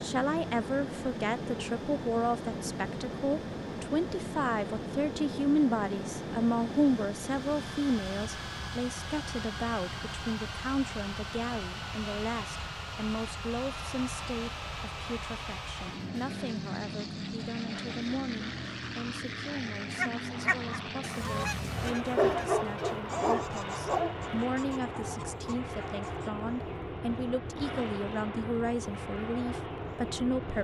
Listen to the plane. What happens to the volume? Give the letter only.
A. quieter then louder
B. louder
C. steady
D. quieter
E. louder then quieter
C.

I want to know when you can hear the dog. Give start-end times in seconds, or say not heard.
22.1-24.1.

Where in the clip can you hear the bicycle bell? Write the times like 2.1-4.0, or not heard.
not heard.